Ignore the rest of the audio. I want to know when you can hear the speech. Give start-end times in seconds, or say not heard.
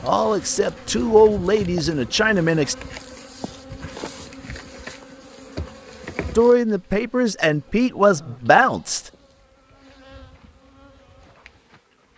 0.0-2.8, 6.3-9.0.